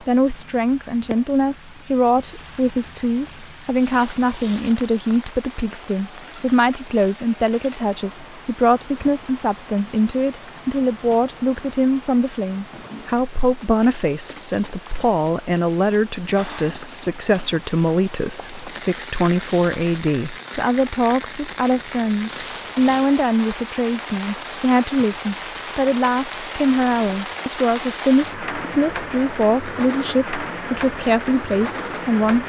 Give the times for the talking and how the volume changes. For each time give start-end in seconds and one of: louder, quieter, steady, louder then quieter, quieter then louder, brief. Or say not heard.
0.1-32.4 steady.